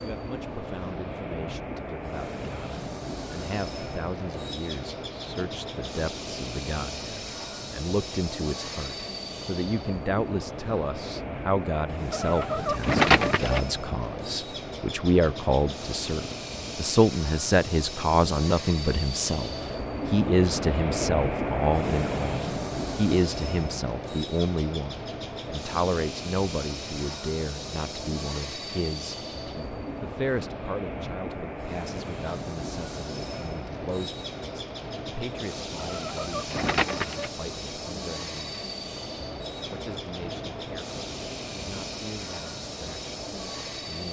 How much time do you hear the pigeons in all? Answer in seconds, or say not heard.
3 s.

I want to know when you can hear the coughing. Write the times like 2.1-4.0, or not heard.
not heard.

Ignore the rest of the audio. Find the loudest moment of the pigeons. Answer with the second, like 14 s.
13 s.